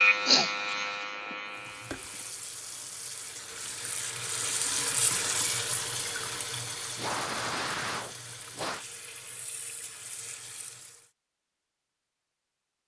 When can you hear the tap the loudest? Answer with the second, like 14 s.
5 s.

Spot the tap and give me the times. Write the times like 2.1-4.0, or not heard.
1.5-11.1.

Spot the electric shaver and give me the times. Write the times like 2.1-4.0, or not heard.
0.0-2.5.